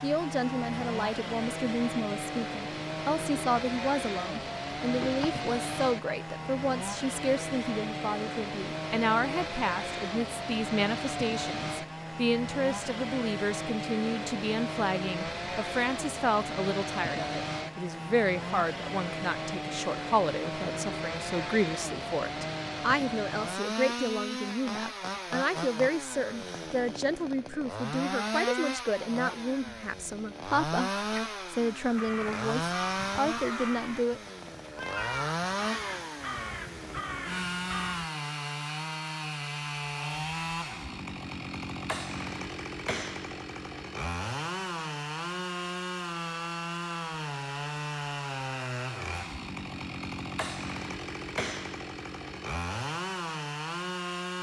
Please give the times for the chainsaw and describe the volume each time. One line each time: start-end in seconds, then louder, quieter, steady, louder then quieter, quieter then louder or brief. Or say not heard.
0.0-54.3 steady.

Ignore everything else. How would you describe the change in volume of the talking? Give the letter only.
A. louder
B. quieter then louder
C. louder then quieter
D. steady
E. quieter
D.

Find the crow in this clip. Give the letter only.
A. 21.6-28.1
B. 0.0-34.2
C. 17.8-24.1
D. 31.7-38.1
D.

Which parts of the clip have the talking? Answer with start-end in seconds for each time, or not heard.
0.0-34.2.